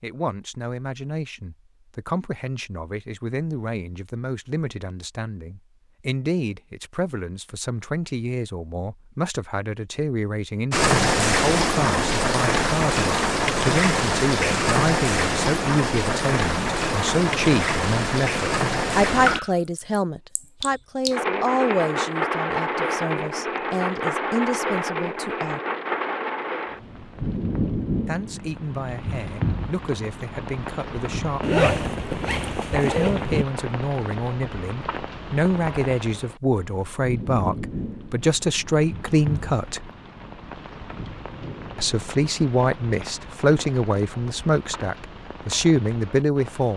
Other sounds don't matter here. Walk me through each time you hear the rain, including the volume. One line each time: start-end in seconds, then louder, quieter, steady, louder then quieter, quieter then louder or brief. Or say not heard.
10.7-46.7 quieter.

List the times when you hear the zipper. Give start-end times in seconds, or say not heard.
31.4-33.5.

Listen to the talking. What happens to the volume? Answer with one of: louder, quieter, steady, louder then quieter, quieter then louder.
louder.